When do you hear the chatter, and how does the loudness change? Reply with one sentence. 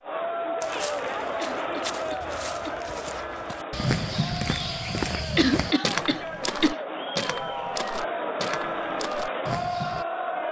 The chatter can be heard from 0.0 to 10.4 s, getting quieter then louder.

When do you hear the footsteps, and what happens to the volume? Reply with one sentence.
You can hear the footsteps from 0.6 to 10.1 s, getting louder then quieter.